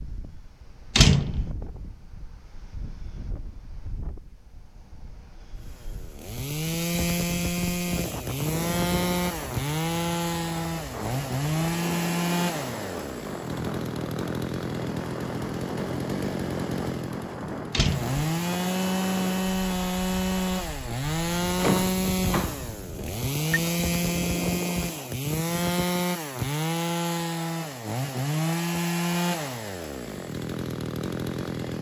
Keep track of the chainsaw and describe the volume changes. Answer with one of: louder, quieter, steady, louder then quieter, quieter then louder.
steady.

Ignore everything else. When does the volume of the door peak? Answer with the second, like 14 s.
1 s.